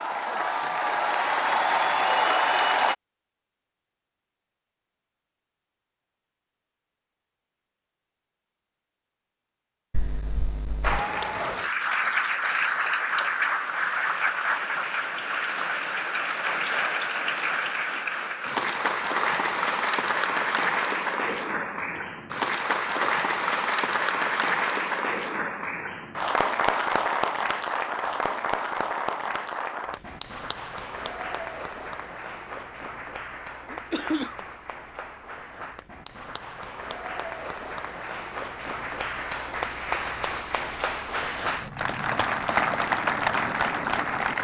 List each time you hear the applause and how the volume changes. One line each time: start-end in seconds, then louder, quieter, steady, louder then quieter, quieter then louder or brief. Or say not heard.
0.0-3.0 brief
10.8-44.3 quieter then louder.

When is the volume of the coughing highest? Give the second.
34 s.